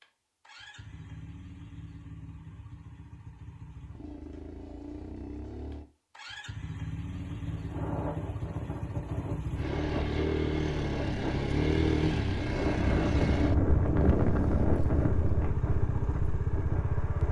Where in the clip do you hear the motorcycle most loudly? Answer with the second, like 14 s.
12 s.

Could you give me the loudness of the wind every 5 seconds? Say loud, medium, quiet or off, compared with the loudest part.
off, medium, loud, medium.